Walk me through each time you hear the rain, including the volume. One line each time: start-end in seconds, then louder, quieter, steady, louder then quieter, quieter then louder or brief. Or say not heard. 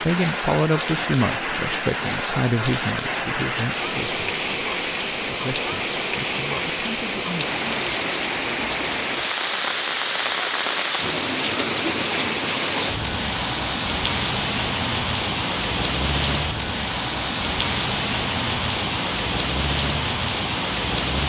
0.0-21.2 steady.